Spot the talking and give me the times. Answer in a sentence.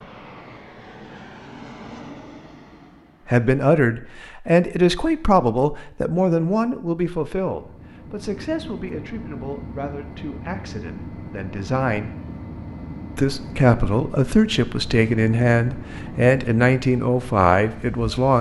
The talking can be heard from 3.2 to 12.1 s and from 13.2 to 18.3 s.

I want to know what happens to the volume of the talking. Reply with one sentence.
The loudness of the talking goes down, then up.